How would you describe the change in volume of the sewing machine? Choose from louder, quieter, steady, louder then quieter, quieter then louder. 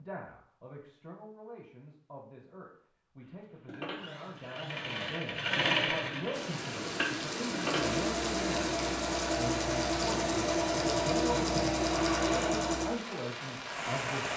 louder.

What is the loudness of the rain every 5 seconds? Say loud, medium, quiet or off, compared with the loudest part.
off, loud, loud.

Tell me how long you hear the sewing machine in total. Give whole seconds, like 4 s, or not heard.
10 s.